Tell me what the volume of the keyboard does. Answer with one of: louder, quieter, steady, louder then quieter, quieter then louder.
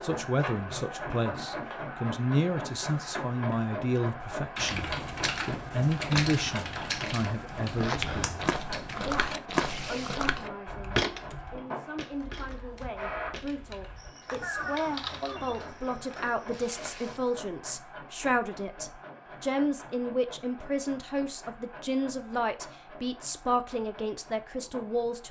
quieter then louder.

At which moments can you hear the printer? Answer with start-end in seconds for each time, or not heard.
0.0-25.2.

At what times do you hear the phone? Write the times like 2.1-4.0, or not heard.
14.4-15.7.